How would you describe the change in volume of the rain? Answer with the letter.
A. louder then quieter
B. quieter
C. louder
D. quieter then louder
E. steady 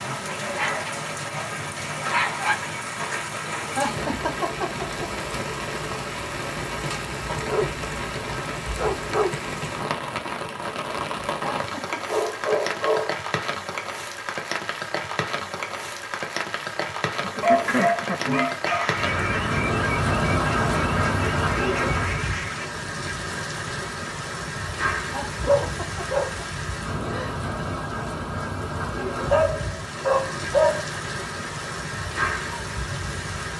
E.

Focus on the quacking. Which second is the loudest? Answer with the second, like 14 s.
18 s.